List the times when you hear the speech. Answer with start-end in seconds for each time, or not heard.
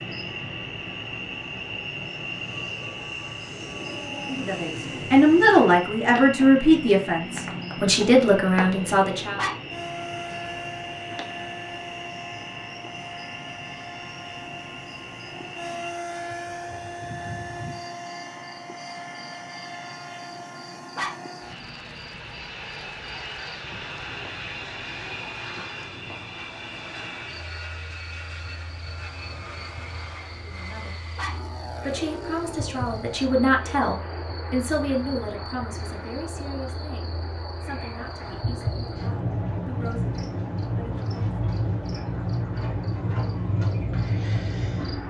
4.3-9.4, 30.4-41.0.